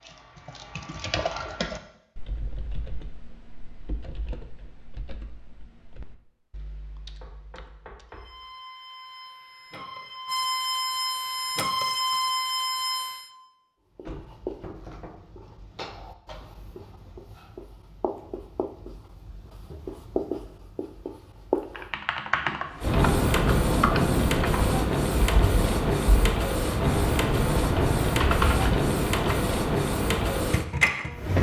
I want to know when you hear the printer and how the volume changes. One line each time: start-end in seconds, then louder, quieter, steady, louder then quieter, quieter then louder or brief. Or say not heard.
8.1-13.3 louder
22.7-31.3 steady.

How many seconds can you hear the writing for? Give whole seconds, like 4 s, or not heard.
8 s.